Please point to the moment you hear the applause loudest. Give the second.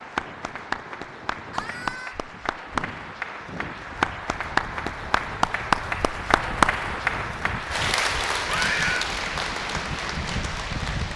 6 s.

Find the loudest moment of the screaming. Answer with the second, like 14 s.
9 s.